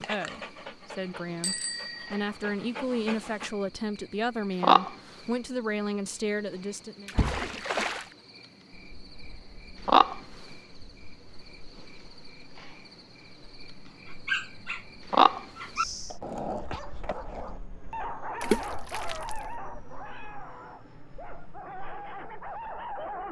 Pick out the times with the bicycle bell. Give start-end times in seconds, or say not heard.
1.4-2.2.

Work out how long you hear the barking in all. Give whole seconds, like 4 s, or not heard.
13 s.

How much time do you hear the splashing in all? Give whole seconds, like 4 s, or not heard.
2 s.